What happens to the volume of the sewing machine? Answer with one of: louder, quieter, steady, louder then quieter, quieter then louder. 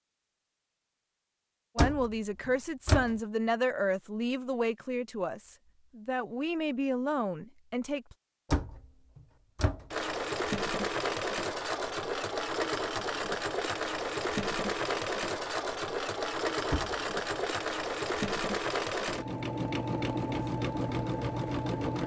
steady.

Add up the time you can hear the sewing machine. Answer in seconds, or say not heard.
12 s.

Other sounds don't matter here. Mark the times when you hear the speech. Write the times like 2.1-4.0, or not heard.
1.8-8.2.